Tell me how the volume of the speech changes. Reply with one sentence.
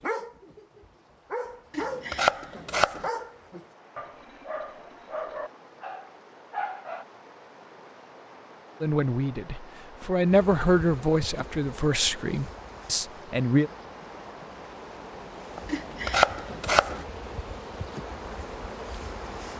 The loudness of the speech goes up, then down.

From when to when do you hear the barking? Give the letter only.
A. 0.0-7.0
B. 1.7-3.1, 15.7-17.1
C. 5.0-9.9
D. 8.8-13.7
A.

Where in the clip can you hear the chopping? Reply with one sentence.
You can hear the chopping from 1.7 to 3.1 s and from 15.7 to 17.1 s.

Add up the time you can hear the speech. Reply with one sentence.
You can hear the speech for 5 seconds altogether.